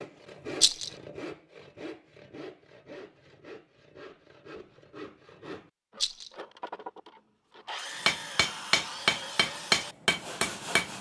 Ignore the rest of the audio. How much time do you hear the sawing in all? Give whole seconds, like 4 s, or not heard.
11 s.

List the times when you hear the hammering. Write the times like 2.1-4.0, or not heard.
8.1-10.9.